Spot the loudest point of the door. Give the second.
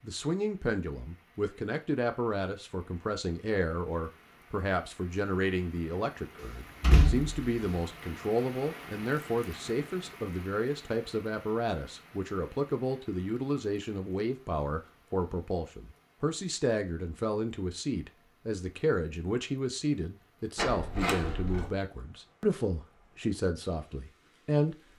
7 s.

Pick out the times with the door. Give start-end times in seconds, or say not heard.
6.4-7.8, 20.6-21.7.